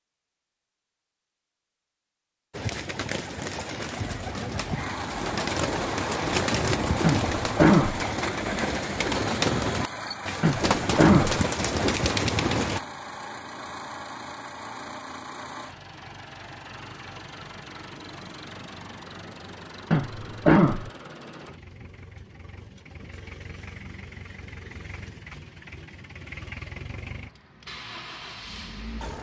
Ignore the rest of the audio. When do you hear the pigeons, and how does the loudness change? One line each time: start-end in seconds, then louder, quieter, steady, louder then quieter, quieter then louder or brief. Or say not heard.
2.5-12.8 louder.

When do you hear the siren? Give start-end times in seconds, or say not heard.
not heard.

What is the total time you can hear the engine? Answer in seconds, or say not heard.
24 s.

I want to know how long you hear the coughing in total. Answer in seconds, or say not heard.
3 s.